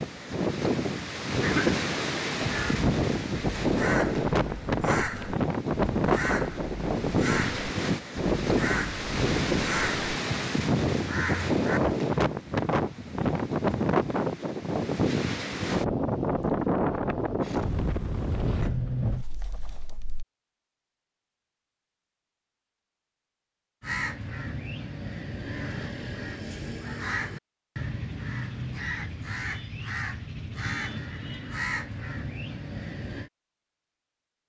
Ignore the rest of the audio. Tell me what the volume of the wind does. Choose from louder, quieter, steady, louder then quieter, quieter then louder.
steady.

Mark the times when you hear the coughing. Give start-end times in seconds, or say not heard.
1.4-2.6.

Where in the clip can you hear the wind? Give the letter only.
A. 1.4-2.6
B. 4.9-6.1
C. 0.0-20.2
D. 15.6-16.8
C.